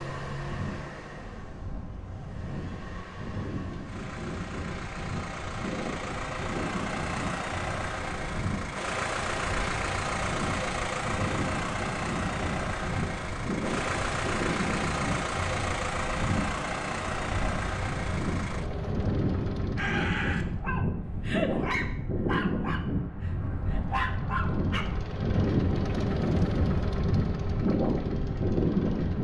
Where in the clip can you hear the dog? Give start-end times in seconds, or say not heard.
19.8-24.9.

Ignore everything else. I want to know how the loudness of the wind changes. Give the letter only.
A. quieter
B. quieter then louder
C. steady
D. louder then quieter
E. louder
E.